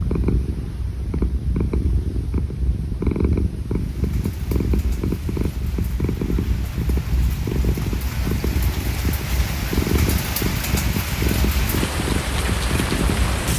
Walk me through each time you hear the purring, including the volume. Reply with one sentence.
The purring can be heard from 0.0 to 13.5 s, at a steady volume.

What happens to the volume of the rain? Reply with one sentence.
The loudness of the rain goes up.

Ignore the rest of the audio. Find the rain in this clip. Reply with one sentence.
The rain can be heard from 3.6 to 13.5 s.